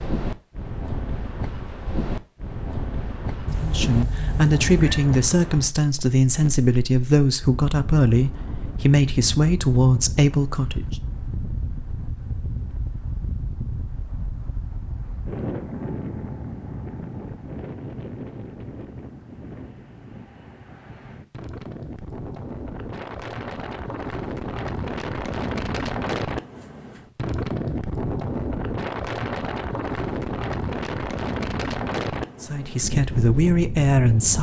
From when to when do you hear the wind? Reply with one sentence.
You can hear the wind from 0.0 to 34.3 s.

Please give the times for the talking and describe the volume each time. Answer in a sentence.
You can hear the talking from 3.5 to 10.8 s, at a steady volume; and briefly from 32.4 to 34.3 s.